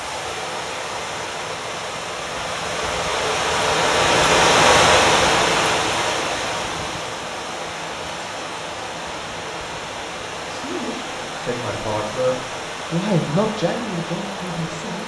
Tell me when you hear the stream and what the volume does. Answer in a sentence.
The stream can be heard from 0.0 to 15.0 s, getting louder then quieter.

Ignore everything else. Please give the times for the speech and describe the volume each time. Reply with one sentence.
You can hear the speech from 10.5 to 15.0 s, getting louder then quieter.